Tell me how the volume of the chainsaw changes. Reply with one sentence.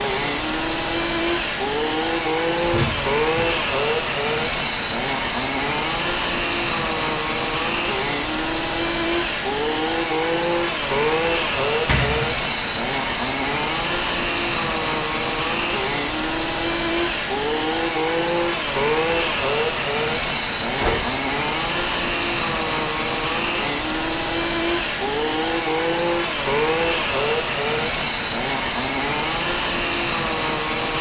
The volume of the chainsaw stays about the same.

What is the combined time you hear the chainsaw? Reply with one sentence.
You can hear the chainsaw for 31 seconds altogether.